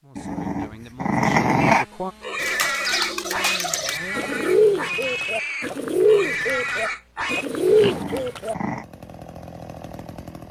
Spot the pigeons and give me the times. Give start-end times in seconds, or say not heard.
2.4-8.6.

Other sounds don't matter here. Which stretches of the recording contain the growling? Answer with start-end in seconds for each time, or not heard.
0.1-1.9, 7.7-8.8.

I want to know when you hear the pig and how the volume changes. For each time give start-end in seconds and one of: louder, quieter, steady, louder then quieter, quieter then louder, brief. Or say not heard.
1.6-8.3 steady.